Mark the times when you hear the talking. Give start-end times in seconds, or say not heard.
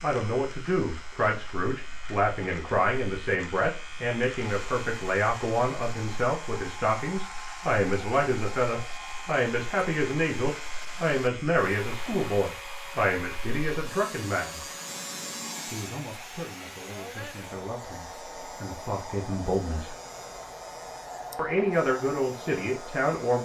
0.0-14.7, 15.7-19.9, 21.4-23.4.